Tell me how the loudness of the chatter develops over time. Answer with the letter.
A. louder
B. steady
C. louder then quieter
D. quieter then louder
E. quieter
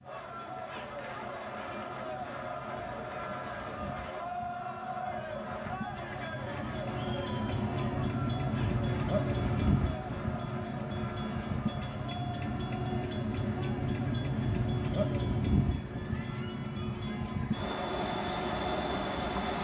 E.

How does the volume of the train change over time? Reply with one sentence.
The volume of the train goes up.